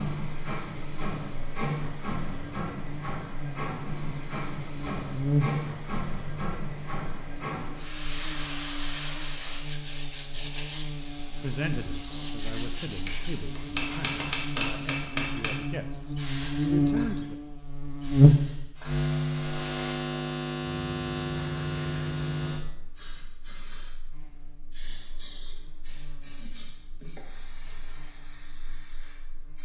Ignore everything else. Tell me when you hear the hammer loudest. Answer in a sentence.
The loudest moment of the hammer is at 14 seconds.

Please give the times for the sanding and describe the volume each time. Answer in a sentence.
The sanding can be heard from 7.9 to 14.3 s, at a steady volume.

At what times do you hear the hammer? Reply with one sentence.
You can hear the hammer from 13.1 to 15.8 s.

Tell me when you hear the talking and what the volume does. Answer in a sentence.
You can hear the talking from 11.3 to 17.4 s, getting louder.